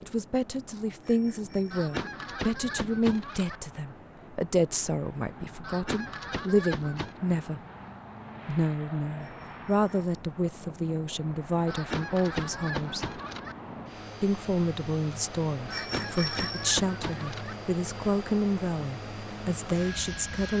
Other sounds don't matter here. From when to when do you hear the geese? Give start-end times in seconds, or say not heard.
1.7-3.6, 5.6-7.2, 11.7-13.6, 15.7-17.6.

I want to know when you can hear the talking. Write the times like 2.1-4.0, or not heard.
0.0-7.6, 8.4-13.2, 14.2-20.5.